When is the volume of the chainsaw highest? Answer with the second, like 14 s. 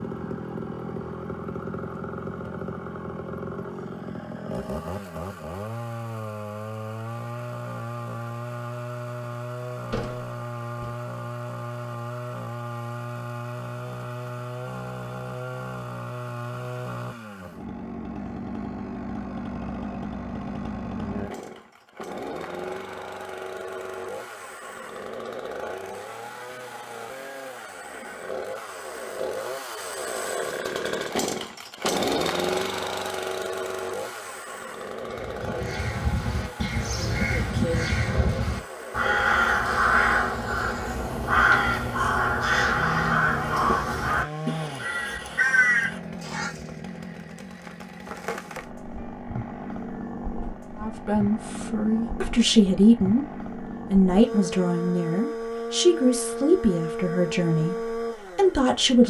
32 s.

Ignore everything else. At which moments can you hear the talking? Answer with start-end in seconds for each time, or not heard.
50.8-53.2, 53.9-59.0.